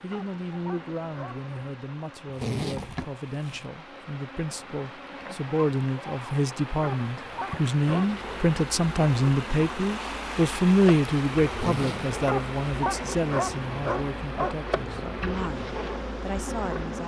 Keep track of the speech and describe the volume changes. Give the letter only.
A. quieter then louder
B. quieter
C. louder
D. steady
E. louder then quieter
E.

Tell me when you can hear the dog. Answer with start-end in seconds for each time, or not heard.
0.1-1.4, 6.8-8.3, 12.2-15.2.